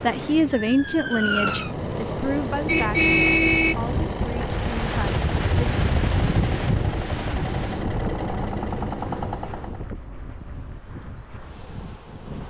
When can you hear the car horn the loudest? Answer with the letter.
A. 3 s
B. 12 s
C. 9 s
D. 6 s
A.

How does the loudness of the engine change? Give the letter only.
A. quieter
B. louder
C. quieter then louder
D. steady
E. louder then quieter
D.